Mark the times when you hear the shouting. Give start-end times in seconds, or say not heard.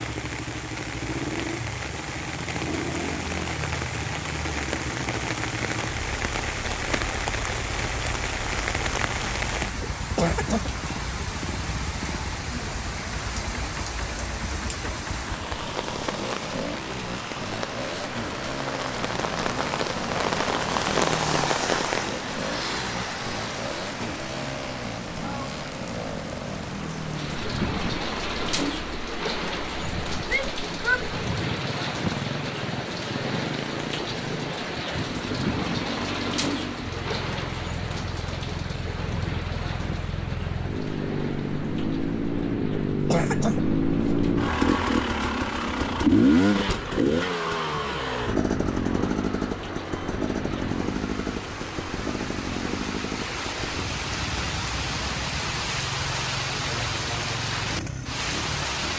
30.2-31.1.